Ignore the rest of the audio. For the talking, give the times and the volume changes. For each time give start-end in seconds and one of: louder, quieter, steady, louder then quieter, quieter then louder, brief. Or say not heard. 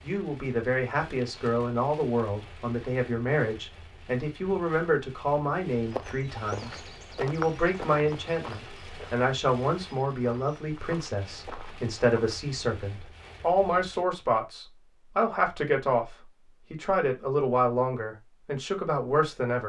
0.0-19.6 steady.